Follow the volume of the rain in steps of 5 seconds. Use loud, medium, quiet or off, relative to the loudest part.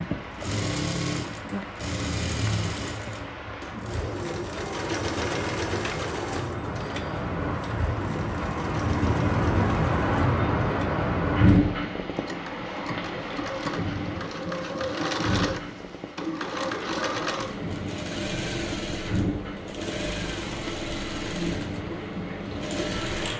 medium, loud, loud, medium, medium.